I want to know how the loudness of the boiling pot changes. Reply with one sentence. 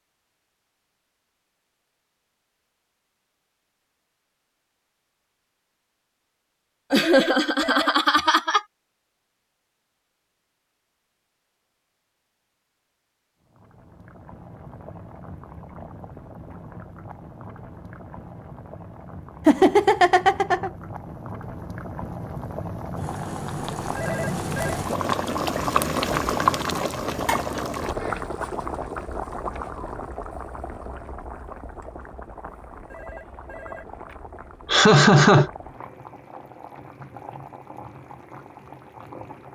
The loudness of the boiling pot goes up, then down.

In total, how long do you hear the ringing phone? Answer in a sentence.
The ringing phone can be heard for 3 seconds in total.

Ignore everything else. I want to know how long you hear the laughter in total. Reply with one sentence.
You can hear the laughter for 4 seconds altogether.